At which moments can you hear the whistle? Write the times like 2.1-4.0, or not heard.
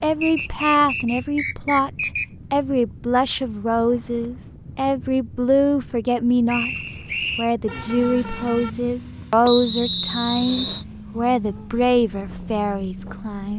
0.2-2.2, 6.5-7.5, 9.4-10.8.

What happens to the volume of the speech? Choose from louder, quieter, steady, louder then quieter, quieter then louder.
steady.